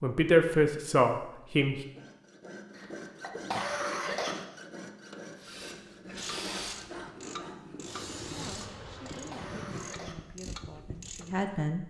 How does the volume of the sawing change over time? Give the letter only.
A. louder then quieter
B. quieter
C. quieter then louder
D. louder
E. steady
E.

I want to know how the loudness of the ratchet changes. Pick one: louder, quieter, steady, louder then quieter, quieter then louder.
steady.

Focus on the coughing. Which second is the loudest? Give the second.
4 s.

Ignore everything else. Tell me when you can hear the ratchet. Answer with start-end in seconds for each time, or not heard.
6.2-11.6.